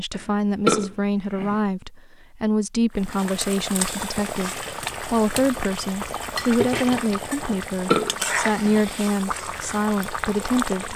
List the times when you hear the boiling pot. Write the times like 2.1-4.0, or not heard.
3.0-10.9.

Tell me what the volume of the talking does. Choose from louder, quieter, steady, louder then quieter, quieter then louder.
steady.